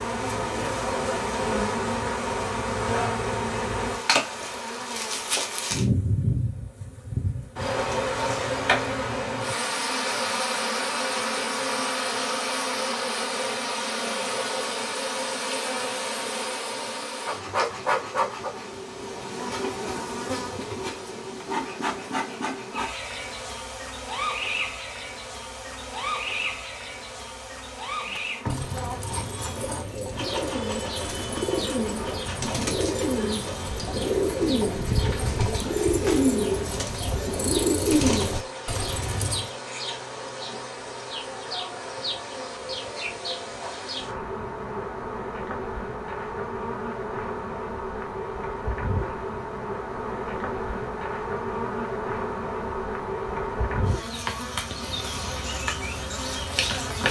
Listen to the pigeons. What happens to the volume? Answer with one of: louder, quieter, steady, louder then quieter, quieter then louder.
louder.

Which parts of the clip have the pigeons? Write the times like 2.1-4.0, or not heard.
28.0-39.5.